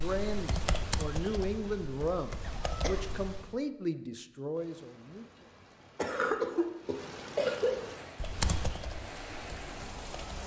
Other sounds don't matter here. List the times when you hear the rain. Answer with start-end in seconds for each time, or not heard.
4.5-10.4.